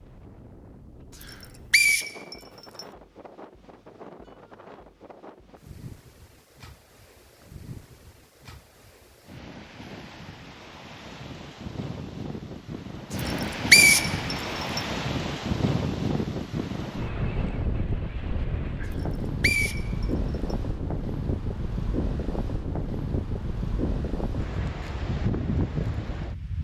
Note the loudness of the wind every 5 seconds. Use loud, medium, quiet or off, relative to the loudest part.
quiet, quiet, loud, loud, loud, loud.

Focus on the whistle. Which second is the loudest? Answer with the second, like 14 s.
14 s.